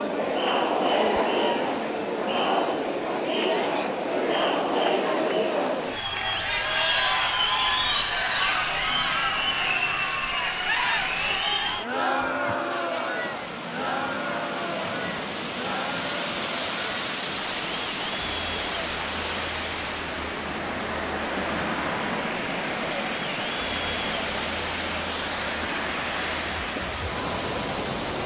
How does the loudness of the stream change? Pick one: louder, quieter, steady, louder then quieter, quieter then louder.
louder.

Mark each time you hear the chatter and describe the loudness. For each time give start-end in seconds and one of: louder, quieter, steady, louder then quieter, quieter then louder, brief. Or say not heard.
0.0-28.2 quieter.